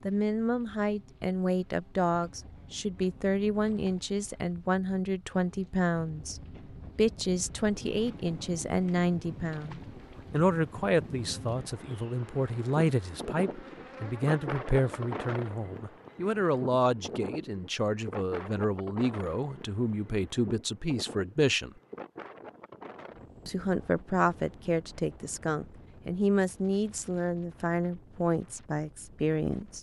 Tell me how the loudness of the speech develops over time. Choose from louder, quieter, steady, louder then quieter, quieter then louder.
steady.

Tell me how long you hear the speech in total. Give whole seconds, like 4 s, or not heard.
28 s.